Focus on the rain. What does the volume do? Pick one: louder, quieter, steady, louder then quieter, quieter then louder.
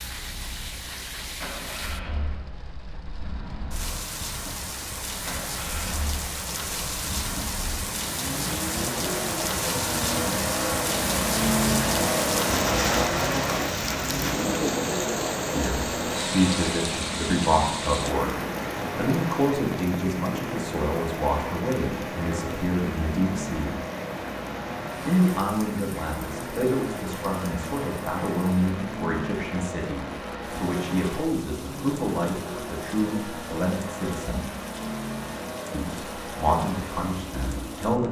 louder then quieter.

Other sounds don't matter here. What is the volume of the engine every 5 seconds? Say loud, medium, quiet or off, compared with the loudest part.
quiet, medium, loud, medium, medium, medium, medium, medium.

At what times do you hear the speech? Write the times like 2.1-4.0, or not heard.
15.5-18.3, 18.9-23.8, 25.1-34.5, 35.7-38.0.